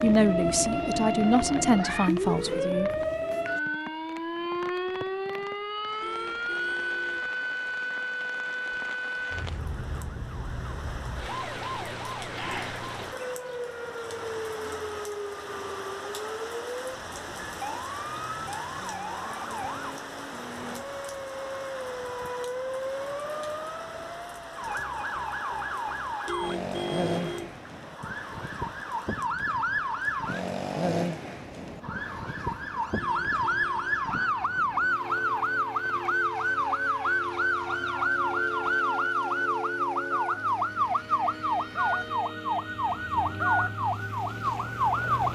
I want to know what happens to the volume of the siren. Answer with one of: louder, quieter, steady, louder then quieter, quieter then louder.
quieter then louder.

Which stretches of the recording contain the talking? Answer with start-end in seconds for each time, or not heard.
0.0-2.9.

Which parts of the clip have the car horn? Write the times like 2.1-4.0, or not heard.
6.0-7.3, 26.2-27.6, 33.0-34.0.